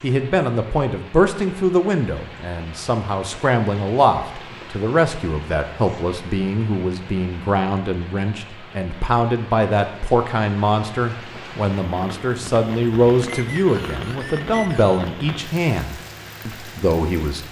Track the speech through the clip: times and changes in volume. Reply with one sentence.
You can hear the speech from 0.0 to 17.4 s, at a steady volume.